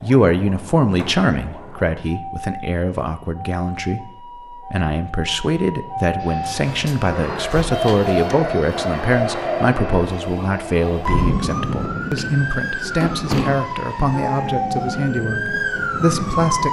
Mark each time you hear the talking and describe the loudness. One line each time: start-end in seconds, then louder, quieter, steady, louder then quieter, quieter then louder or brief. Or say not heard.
0.0-16.6 steady.